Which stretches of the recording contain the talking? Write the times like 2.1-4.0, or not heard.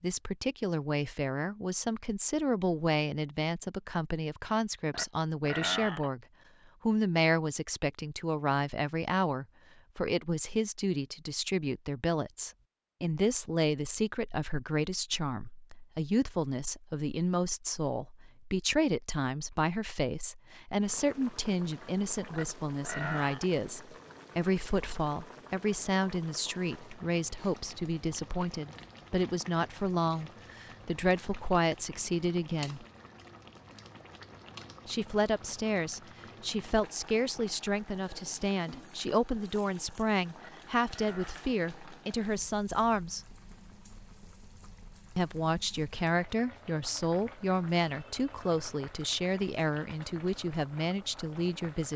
0.0-6.2, 6.8-32.9, 34.9-43.2, 45.1-51.9.